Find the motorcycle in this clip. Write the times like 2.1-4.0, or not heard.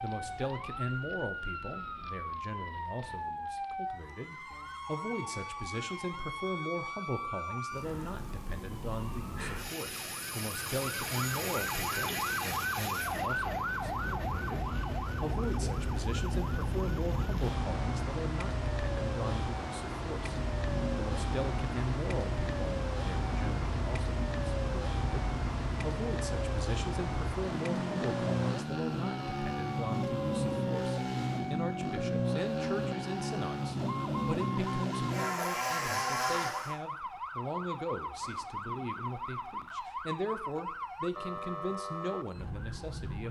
13.8-36.8.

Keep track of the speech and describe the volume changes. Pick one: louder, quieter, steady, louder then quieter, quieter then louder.
steady.